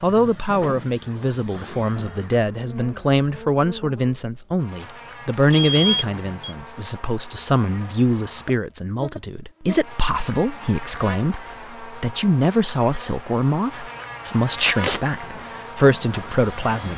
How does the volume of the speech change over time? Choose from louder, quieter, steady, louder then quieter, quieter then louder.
steady.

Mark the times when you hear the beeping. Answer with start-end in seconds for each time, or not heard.
5.5-6.5.